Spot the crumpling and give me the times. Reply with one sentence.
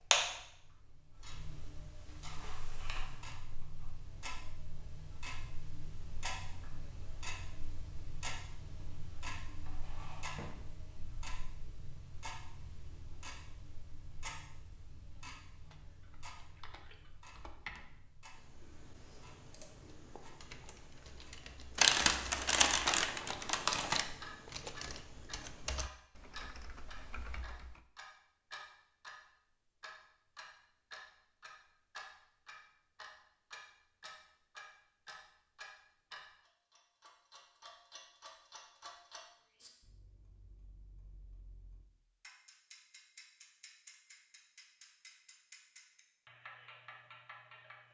The crumpling can be heard from 21.8 to 24.1 s.